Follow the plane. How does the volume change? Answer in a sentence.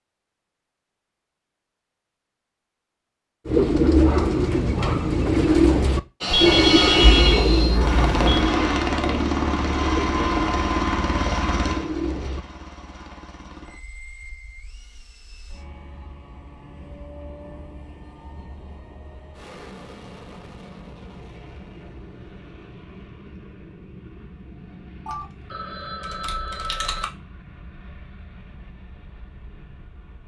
The volume of the plane goes down.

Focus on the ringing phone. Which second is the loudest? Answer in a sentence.
The loudest moment of the ringing phone is at 7 seconds.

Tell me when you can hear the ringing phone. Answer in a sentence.
The ringing phone can be heard from 6.3 to 8.6 s and from 25.1 to 27.1 s.